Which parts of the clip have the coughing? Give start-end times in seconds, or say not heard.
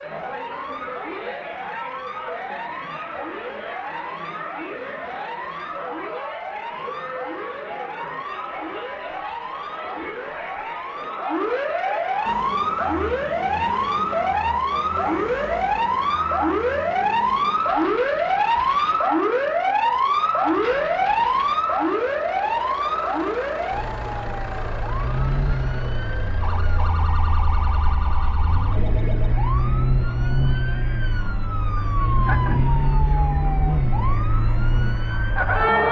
not heard.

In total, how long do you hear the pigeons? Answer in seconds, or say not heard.
not heard.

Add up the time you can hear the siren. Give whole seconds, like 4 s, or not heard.
36 s.